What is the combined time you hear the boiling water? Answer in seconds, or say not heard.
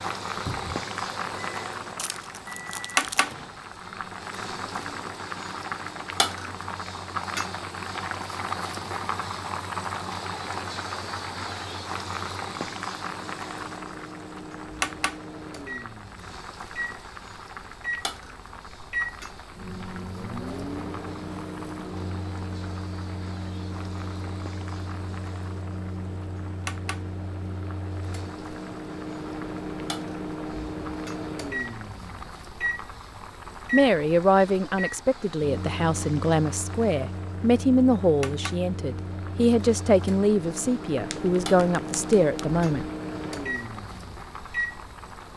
45 s.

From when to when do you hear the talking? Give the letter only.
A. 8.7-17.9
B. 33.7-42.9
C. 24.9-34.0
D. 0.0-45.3
B.